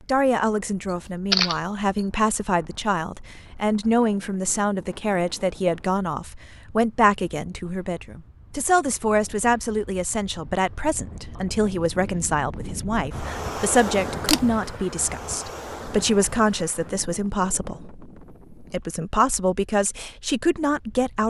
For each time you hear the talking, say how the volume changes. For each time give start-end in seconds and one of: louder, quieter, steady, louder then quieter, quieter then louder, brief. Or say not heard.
0.1-21.2 steady.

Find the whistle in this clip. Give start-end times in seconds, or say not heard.
not heard.